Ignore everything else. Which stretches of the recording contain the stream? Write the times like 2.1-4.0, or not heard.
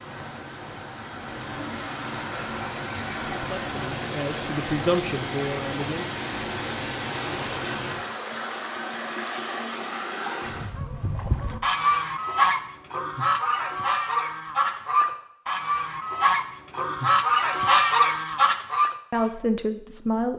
0.0-10.8.